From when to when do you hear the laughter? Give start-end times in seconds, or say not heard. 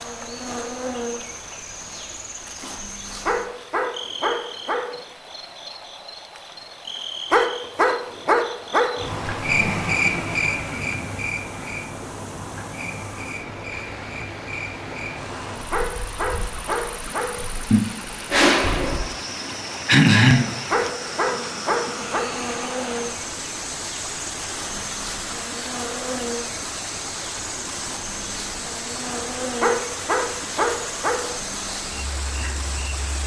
9.4-11.2, 17.7-20.5.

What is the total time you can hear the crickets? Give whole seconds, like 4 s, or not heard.
33 s.